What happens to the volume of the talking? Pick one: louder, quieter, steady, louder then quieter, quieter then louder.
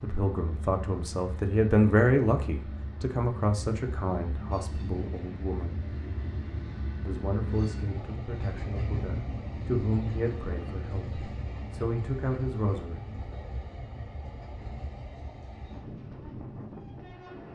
quieter.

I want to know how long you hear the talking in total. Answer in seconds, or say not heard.
12 s.